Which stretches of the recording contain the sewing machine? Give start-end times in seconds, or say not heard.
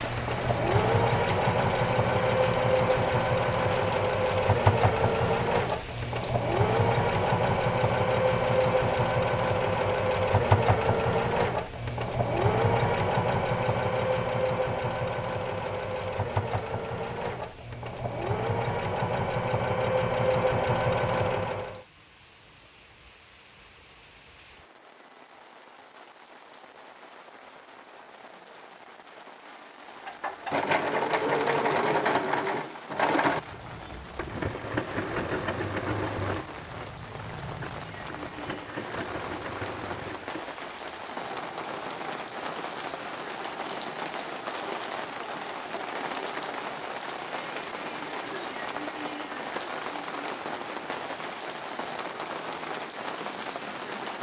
0.0-21.8, 30.1-54.1.